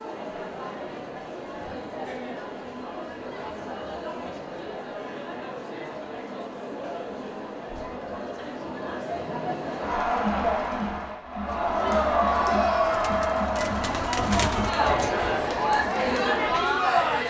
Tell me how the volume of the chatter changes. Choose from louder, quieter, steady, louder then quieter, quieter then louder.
louder.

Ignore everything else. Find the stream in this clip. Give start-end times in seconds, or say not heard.
not heard.